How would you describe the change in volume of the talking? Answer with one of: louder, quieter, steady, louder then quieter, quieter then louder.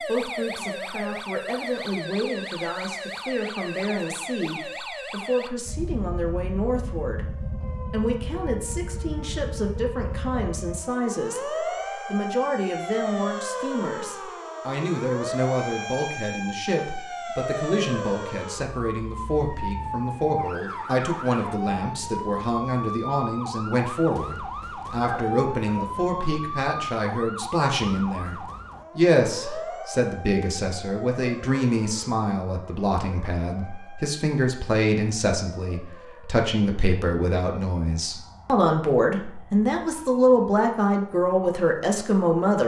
louder.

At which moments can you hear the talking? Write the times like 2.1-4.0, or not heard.
0.0-42.6.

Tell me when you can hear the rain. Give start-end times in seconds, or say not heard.
not heard.